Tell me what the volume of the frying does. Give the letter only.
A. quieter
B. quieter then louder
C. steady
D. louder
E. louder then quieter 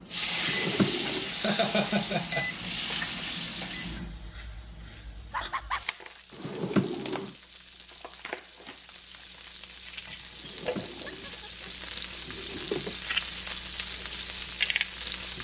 B.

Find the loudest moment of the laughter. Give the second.
2 s.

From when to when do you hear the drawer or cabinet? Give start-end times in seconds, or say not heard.
0.3-1.3, 6.3-7.3, 10.3-12.9.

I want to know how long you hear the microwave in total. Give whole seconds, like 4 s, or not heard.
4 s.